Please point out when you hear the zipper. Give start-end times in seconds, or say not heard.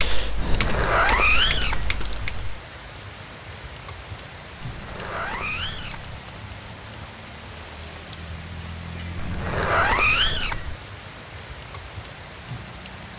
0.3-2.0, 4.7-6.1, 9.2-10.8.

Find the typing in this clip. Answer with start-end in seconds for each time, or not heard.
0.0-2.6.